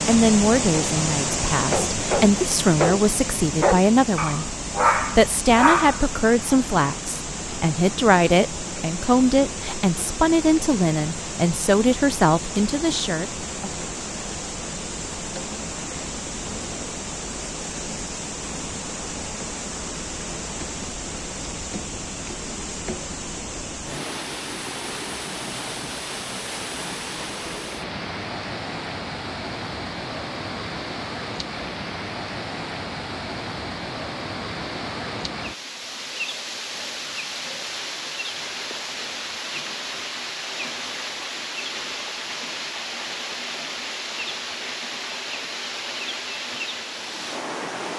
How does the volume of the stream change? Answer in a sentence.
The loudness of the stream stays about the same.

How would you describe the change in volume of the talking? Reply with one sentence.
The loudness of the talking stays about the same.